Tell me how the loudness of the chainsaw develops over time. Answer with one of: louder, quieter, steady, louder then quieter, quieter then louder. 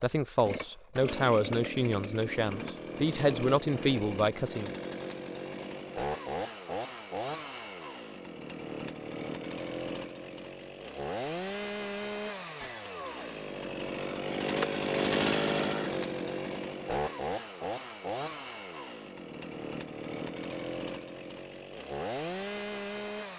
louder then quieter.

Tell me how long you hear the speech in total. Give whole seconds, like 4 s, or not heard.
5 s.